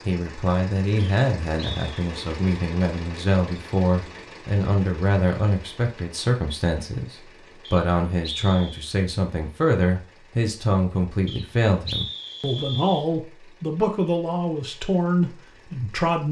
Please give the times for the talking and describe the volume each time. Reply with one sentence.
The talking can be heard from 0.1 to 16.2 s, at a steady volume.